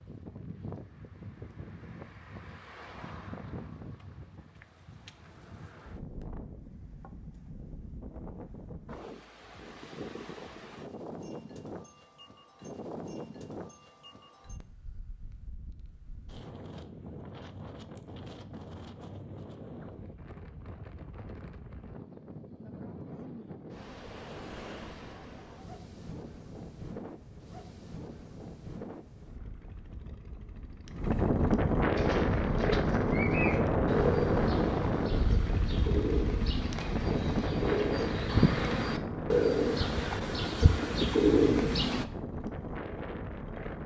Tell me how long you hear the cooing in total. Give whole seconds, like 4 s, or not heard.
10 s.